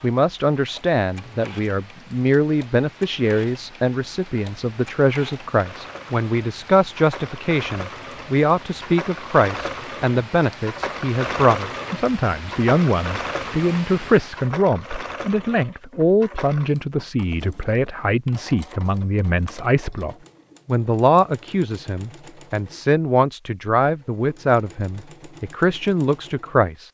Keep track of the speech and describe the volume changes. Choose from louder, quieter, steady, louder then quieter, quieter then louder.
steady.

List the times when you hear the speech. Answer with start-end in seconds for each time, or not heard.
0.0-26.9.